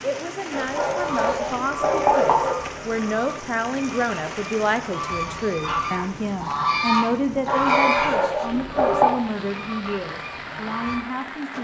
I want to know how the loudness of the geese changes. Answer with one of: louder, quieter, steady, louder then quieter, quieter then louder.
louder then quieter.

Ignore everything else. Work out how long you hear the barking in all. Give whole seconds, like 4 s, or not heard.
4 s.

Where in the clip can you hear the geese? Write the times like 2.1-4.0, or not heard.
1.1-11.0.